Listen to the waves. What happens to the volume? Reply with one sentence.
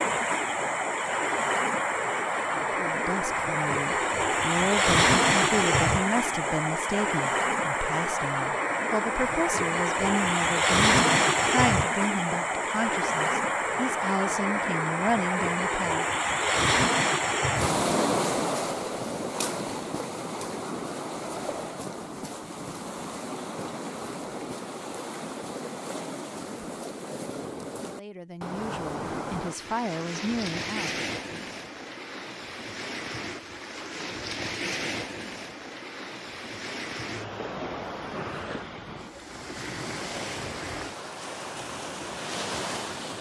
The volume of the waves goes down.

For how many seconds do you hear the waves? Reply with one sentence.
The waves can be heard for 43 seconds in total.